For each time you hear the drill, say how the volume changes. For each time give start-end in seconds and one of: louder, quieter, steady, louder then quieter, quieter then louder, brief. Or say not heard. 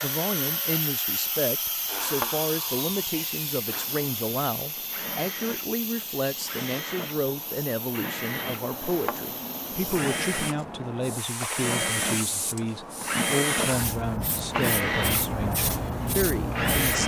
0.0-17.0 louder.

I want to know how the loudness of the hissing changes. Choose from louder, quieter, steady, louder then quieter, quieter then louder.
quieter then louder.